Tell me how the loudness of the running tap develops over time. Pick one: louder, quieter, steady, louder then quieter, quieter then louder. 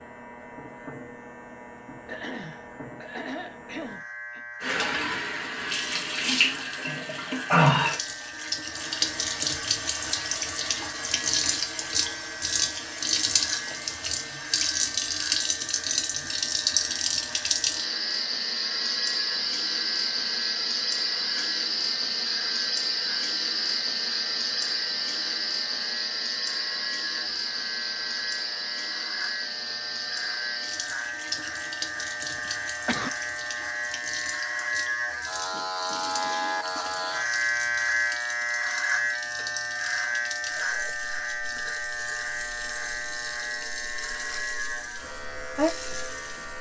quieter.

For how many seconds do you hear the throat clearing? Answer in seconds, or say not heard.
3 s.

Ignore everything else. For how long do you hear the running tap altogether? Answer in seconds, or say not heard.
42 s.